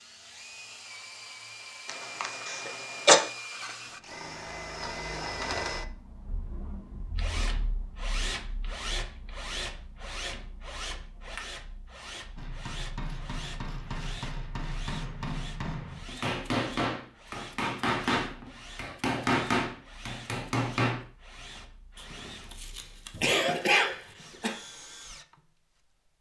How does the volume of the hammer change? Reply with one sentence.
The loudness of the hammer goes up.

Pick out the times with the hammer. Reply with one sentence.
The hammer can be heard from 12.3 to 21.1 s.